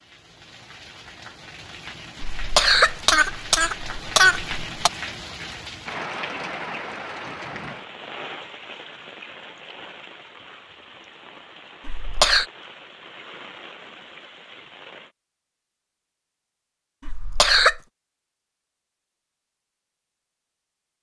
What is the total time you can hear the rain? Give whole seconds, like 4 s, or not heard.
15 s.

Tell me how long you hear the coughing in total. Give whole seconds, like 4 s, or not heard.
4 s.